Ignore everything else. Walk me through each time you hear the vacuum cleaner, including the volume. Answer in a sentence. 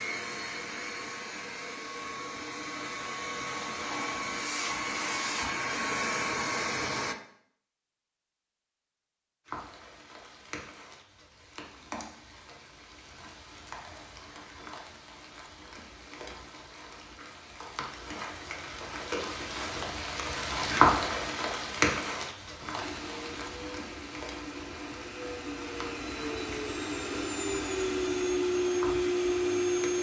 The vacuum cleaner can be heard from 0.0 to 7.2 s, getting louder; and from 22.8 to 29.9 s, getting louder.